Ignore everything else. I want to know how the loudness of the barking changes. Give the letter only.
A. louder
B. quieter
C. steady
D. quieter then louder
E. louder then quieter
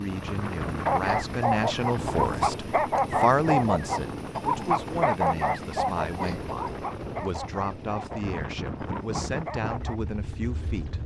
B.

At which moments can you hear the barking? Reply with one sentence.
You can hear the barking from 0.8 to 10.0 s.